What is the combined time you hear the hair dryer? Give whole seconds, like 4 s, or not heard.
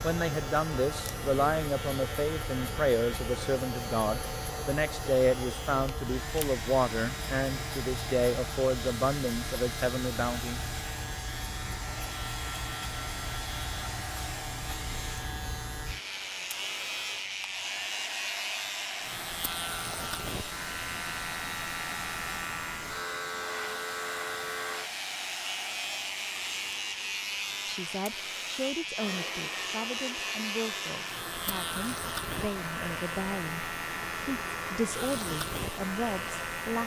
37 s.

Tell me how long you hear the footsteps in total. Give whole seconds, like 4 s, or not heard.
not heard.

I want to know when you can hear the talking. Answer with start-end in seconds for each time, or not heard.
0.0-10.6, 27.6-36.8.